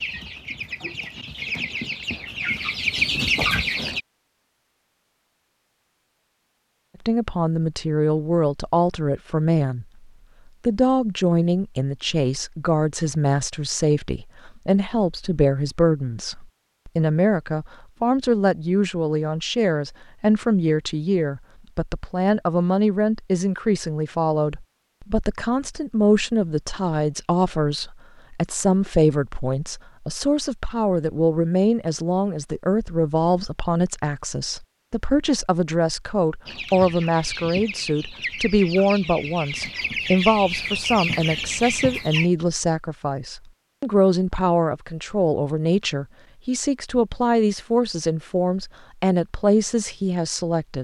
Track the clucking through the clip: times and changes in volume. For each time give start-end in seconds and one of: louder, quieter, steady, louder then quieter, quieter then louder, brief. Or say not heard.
0.0-4.0 louder
36.5-42.3 louder.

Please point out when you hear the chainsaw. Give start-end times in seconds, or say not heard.
not heard.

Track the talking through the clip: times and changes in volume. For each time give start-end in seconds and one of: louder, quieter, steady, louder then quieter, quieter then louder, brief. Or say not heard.
7.0-9.8 brief
10.7-50.7 steady.